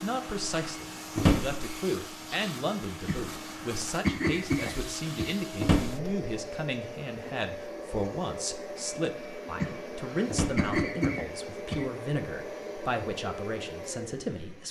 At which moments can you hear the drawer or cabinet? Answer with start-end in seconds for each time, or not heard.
1.1-1.6, 5.5-6.1, 10.2-10.7.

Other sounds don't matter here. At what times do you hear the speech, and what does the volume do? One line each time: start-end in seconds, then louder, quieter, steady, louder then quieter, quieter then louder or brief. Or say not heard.
0.0-14.6 steady.